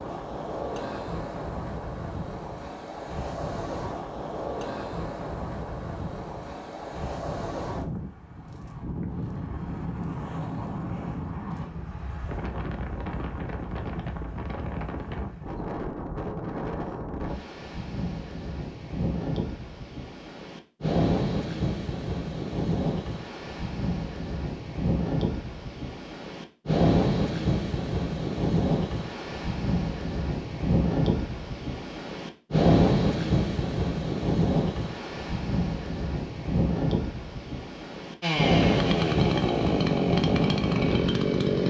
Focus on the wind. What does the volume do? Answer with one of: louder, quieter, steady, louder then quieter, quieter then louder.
louder.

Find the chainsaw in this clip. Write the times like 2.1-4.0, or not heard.
38.2-41.6.